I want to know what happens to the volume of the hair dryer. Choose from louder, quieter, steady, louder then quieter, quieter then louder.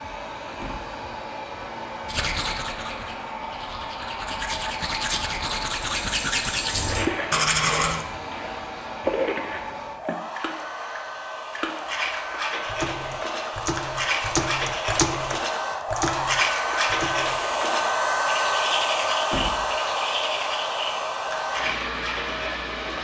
louder.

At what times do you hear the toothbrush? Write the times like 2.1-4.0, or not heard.
2.0-8.1, 11.8-22.9.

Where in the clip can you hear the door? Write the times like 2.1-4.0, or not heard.
0.6-1.0, 19.3-19.8.